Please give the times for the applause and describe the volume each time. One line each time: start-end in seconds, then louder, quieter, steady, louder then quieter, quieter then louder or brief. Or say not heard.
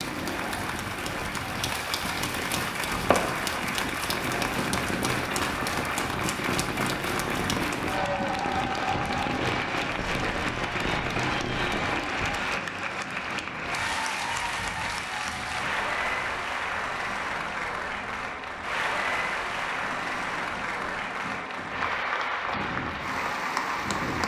0.0-24.2 steady.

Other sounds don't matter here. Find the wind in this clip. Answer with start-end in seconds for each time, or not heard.
0.0-24.2.